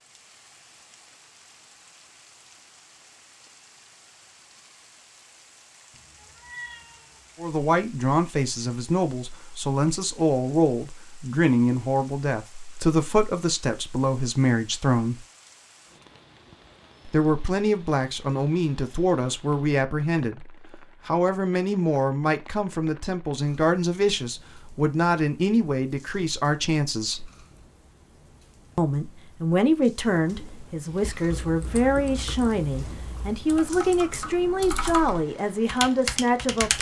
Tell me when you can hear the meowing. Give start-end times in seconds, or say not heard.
5.9-7.5.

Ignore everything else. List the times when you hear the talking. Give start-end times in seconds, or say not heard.
7.4-15.2, 17.1-27.3, 28.8-36.7.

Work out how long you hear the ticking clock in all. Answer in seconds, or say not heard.
not heard.